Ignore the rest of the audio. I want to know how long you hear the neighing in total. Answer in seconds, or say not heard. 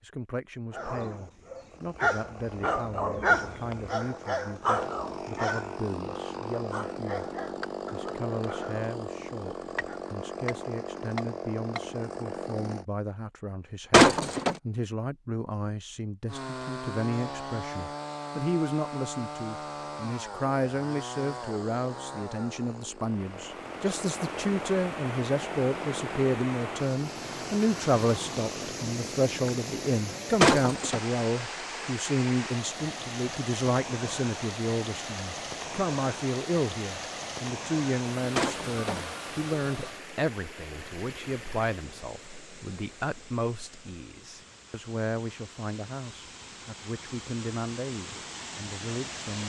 2 s.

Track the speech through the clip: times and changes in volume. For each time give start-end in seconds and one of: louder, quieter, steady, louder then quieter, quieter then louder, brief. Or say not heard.
0.0-7.2 steady
7.9-49.4 louder then quieter.